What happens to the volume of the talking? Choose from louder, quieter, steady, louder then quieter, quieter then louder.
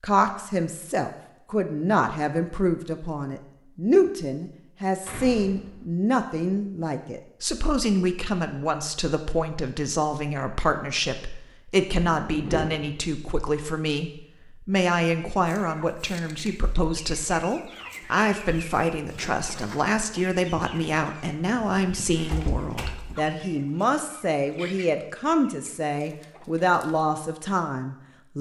steady.